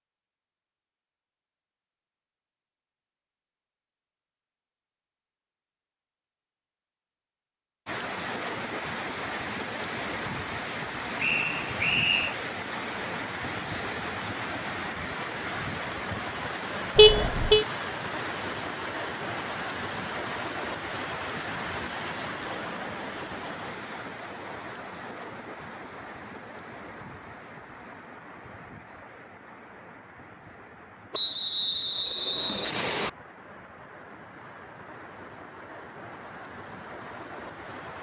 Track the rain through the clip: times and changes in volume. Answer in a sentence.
The rain can be heard from 7.8 to 37.9 s, getting quieter.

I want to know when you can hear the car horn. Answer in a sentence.
You can hear the car horn from 16.9 to 17.6 s.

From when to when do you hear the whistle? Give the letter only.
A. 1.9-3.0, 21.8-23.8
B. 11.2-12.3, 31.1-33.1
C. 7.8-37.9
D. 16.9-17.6
B.